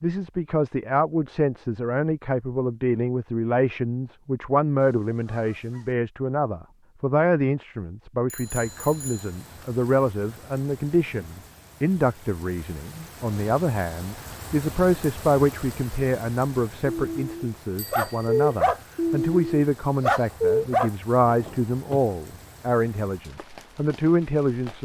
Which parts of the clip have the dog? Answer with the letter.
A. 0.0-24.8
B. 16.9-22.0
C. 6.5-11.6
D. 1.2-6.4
B.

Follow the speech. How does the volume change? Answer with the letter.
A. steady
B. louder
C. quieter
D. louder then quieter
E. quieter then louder
A.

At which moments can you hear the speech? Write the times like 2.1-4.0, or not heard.
0.0-24.8.